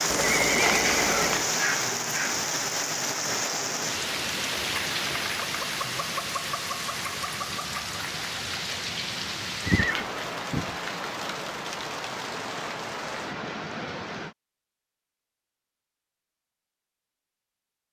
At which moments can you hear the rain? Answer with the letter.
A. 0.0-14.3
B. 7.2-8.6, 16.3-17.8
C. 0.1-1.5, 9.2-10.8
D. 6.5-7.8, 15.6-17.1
A.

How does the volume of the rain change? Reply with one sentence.
The volume of the rain goes down.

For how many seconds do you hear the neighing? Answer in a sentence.
You can hear the neighing for 3 seconds altogether.